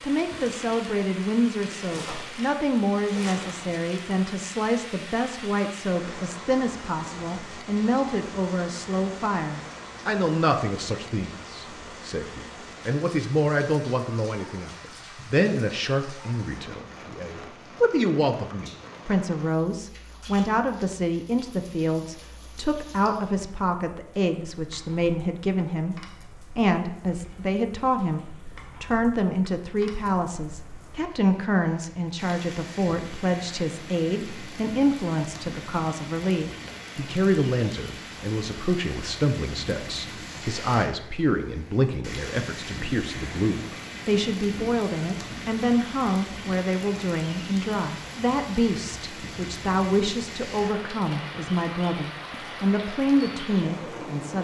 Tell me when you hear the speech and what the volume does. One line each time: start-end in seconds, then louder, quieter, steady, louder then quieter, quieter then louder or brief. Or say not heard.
0.0-54.3 steady.